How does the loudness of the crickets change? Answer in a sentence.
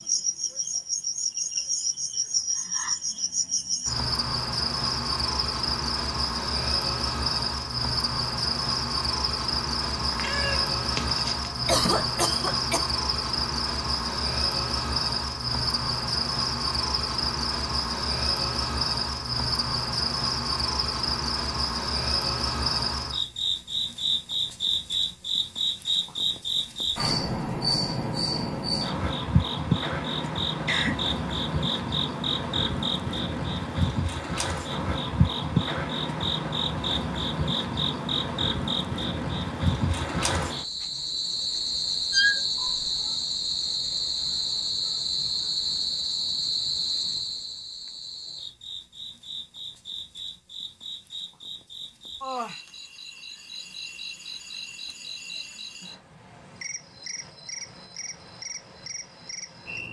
The loudness of the crickets goes down.